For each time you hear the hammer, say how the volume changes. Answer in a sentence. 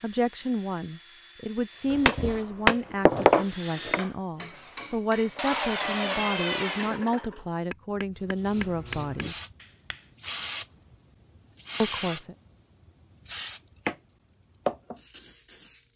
The hammer can be heard from 1.9 to 10.1 s, getting quieter.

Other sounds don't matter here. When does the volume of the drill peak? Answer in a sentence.
The volume of the drill peaks at 6 seconds.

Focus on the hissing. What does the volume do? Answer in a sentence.
The volume of the hissing goes up.